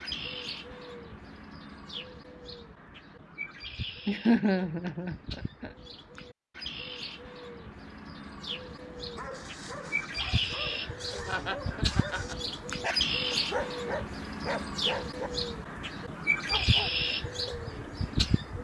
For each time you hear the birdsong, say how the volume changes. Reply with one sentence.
You can hear the birdsong from 0.0 to 18.6 s, getting louder.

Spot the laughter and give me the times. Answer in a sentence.
You can hear the laughter from 4.0 to 5.7 s and from 10.8 to 12.3 s.